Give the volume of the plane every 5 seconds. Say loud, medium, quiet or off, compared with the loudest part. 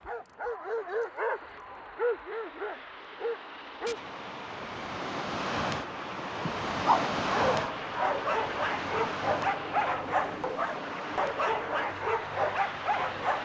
medium, loud, loud.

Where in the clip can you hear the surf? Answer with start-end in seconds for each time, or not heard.
4.0-13.4.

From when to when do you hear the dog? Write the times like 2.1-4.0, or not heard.
0.0-4.0, 6.5-13.4.